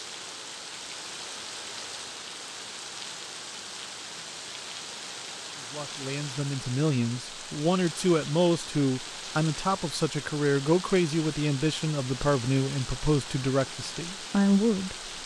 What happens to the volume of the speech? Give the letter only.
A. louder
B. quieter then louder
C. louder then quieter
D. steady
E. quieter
D.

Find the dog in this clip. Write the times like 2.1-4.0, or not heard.
not heard.